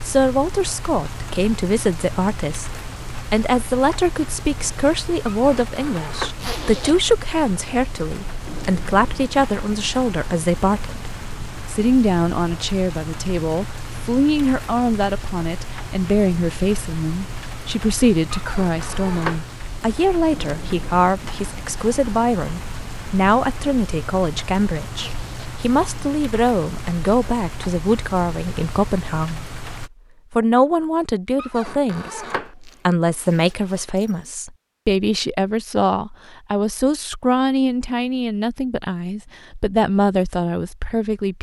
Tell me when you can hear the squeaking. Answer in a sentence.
The squeaking can be heard from 5.3 to 6.3 s, from 18.3 to 19.4 s and from 31.4 to 32.5 s.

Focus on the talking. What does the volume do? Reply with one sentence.
The volume of the talking stays about the same.